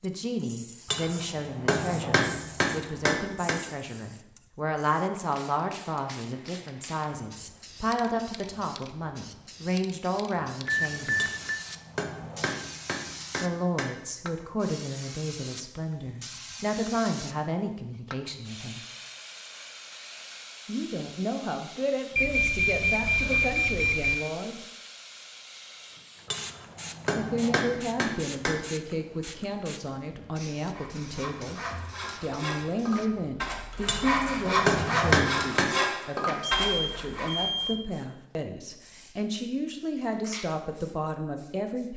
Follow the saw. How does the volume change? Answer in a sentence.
The volume of the saw goes up.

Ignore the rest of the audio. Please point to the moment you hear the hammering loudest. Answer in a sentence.
The volume of the hammering peaks at 35 seconds.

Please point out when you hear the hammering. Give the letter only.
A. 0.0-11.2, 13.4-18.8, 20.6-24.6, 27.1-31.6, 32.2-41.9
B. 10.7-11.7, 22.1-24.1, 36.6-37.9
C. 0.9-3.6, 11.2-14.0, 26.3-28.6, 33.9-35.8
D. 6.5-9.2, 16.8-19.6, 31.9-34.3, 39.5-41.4
C.